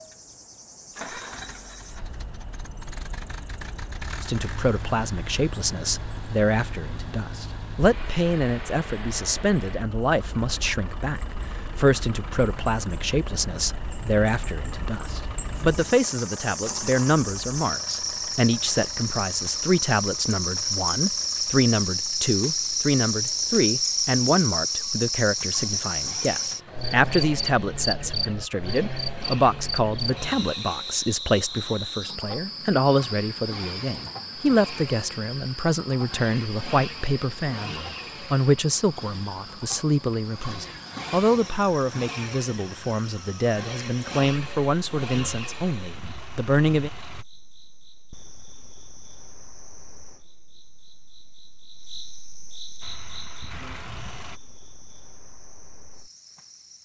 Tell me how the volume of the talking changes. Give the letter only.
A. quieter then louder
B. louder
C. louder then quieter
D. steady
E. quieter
D.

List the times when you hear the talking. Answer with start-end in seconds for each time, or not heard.
4.2-46.9.